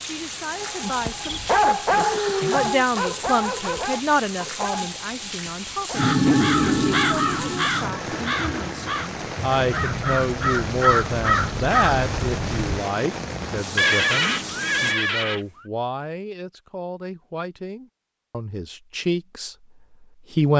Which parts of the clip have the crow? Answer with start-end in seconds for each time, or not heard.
6.0-12.8.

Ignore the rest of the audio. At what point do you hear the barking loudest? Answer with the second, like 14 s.
2 s.